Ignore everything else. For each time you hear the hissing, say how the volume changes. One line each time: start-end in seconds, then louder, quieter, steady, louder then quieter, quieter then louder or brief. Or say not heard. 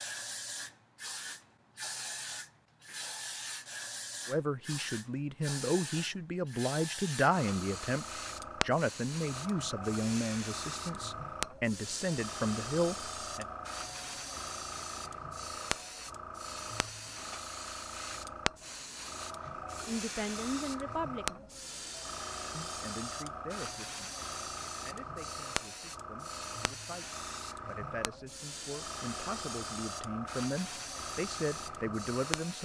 0.0-32.5 steady.